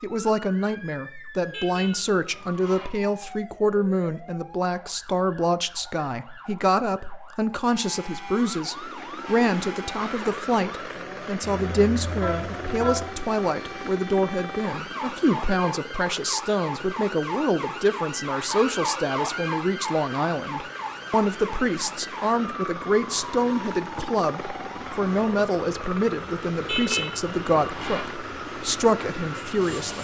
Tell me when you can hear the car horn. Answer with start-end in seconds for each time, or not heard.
1.4-2.9, 11.7-13.1, 26.6-28.1.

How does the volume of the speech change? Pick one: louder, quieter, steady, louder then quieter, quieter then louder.
steady.